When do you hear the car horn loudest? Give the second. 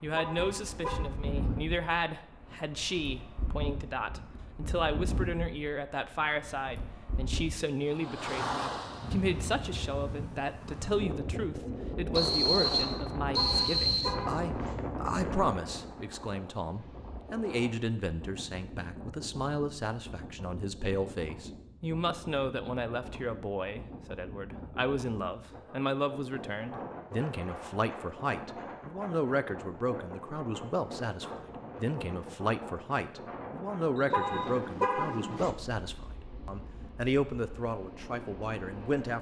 35 s.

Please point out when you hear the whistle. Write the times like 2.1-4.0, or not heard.
12.1-14.2, 34.0-34.5.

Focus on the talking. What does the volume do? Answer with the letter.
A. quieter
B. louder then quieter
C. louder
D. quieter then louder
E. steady
E.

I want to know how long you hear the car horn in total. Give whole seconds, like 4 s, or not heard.
4 s.